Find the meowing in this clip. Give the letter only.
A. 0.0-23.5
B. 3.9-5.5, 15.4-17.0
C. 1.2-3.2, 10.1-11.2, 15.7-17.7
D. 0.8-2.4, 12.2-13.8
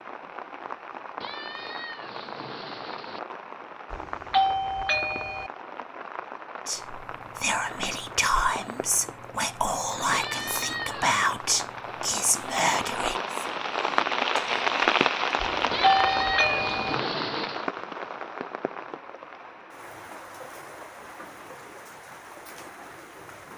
C.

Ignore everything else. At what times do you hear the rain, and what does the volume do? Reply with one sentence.
The rain can be heard from 0.0 to 23.5 s, getting louder then quieter.